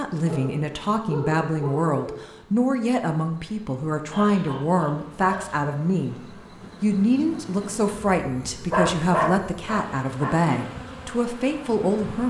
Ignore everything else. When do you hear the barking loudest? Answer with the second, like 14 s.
9 s.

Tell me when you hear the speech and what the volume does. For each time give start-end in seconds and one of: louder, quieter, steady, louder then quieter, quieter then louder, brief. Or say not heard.
0.0-6.2 steady
6.8-12.2 steady.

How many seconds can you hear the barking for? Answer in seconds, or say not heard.
5 s.